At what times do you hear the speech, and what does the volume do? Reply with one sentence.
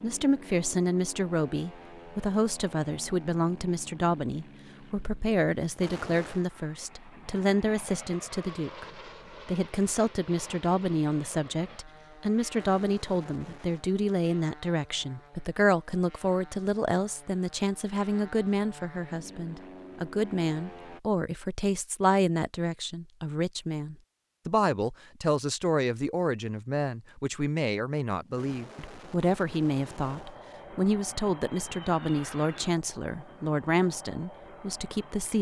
The speech can be heard from 0.0 to 8.8 s, at a steady volume; and from 9.4 to 35.3 s, at a steady volume.